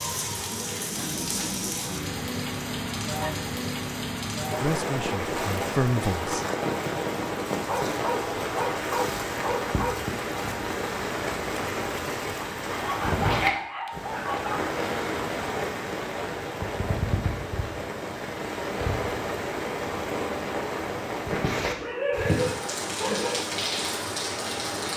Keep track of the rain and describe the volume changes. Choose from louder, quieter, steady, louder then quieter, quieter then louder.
steady.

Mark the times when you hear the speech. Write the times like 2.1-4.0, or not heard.
4.5-6.5.